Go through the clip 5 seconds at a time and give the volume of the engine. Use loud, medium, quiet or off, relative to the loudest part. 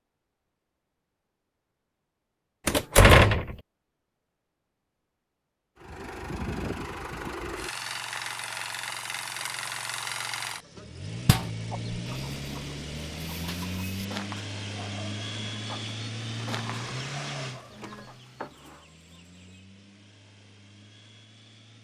off, loud, loud, loud, quiet.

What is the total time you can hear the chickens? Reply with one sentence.
You can hear the chickens for 8 seconds altogether.